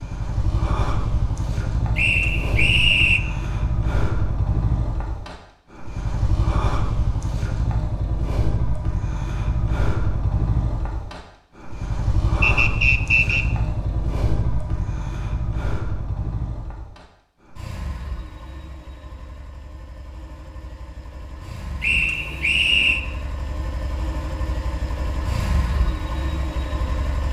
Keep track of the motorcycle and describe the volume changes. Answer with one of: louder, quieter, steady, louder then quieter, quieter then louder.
quieter then louder.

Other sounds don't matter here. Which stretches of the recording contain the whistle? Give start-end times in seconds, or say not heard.
1.9-3.2, 12.4-13.4, 21.8-23.0.